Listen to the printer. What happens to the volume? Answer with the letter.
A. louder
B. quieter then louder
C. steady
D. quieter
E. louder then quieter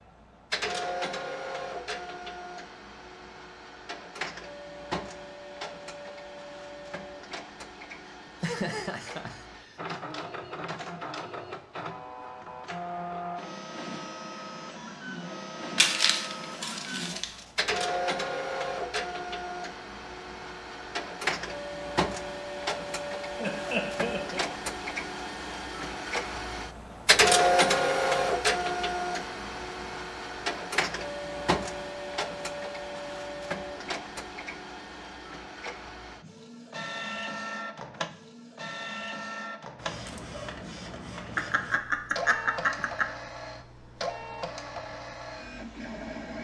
E.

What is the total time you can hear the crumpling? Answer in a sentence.
The crumpling can be heard for 2 seconds in total.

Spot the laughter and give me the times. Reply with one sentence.
You can hear the laughter from 8.2 to 9.8 s, from 23.4 to 24.6 s and from 41.4 to 43.0 s.